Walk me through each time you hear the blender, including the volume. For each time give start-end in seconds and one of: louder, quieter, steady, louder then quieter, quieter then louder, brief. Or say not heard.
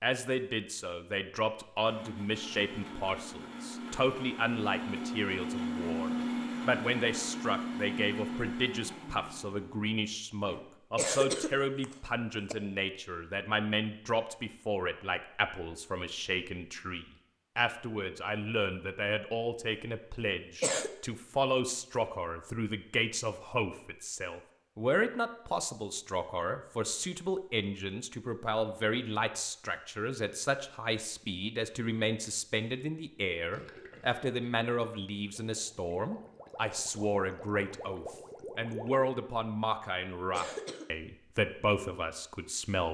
1.8-10.6 louder then quieter.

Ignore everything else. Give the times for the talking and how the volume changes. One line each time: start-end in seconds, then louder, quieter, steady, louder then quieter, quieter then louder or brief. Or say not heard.
0.0-42.9 steady.